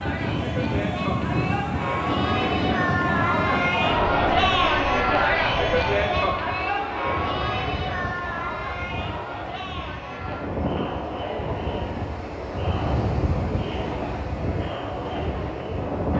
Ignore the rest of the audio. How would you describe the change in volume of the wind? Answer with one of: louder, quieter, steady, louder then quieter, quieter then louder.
quieter then louder.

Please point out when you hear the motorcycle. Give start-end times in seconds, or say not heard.
not heard.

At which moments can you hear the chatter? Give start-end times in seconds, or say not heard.
0.0-16.1.